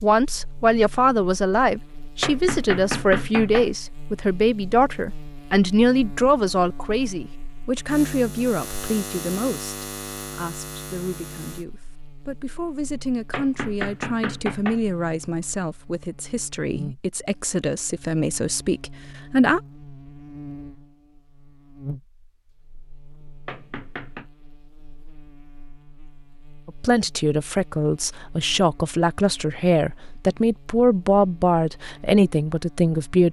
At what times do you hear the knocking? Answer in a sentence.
You can hear the knocking from 2.2 to 3.7 s, from 13.3 to 14.8 s and from 23.4 to 24.3 s.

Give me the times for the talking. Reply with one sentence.
You can hear the talking from 0.0 to 19.6 s and from 26.6 to 33.2 s.